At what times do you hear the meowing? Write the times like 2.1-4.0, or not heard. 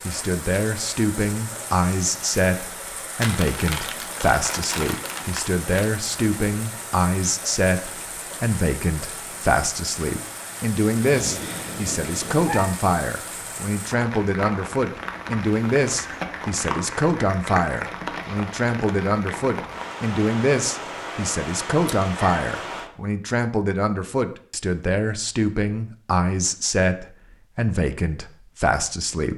11.0-12.7, 21.9-22.4.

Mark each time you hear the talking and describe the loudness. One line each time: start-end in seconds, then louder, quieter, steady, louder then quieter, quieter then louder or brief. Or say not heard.
0.1-29.3 steady.